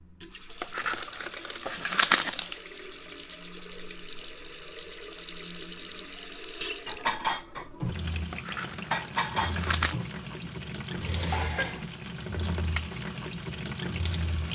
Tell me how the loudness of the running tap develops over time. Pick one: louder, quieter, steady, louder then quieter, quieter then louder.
louder.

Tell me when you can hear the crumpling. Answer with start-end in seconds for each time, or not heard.
0.6-2.5, 8.3-9.9.